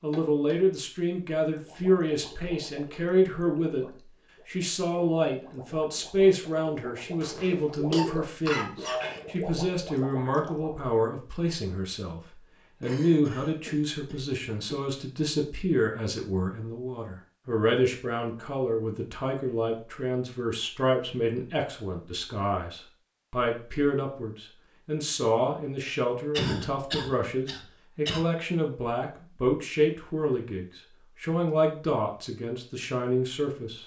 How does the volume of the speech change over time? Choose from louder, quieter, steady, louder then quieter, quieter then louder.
steady.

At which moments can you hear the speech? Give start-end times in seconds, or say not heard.
0.0-33.8.